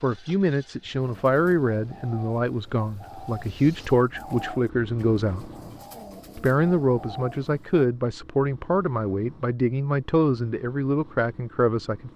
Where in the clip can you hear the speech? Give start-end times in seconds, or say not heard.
0.0-5.5, 6.3-12.1.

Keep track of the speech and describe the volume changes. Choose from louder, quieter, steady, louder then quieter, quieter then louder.
steady.